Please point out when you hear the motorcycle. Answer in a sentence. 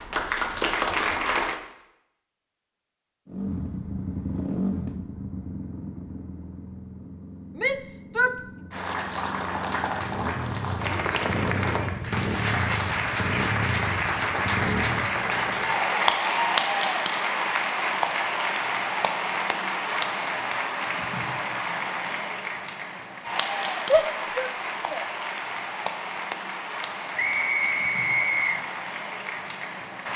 The motorcycle can be heard from 3.2 to 15.2 s.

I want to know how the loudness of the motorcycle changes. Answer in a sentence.
The loudness of the motorcycle goes down, then up.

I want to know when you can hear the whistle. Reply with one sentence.
The whistle can be heard from 27.1 to 28.6 s.